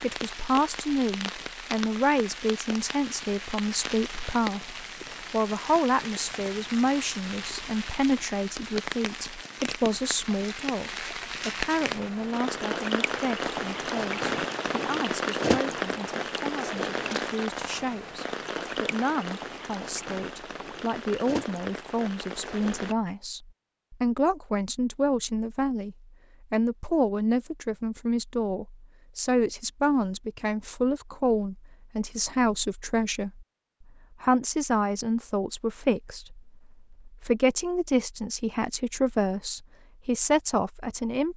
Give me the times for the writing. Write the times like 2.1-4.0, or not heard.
not heard.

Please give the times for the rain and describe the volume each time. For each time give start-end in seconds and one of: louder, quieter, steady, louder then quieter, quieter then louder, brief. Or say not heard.
0.0-22.9 louder then quieter.